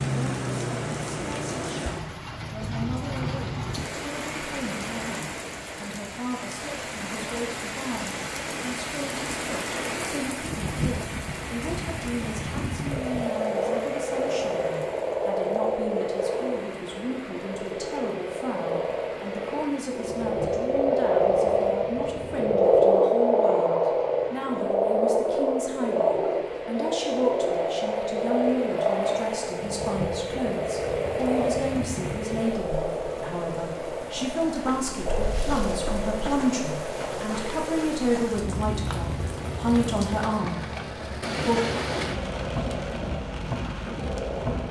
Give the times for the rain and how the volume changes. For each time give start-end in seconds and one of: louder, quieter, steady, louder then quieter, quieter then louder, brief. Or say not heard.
0.0-44.6 quieter then louder.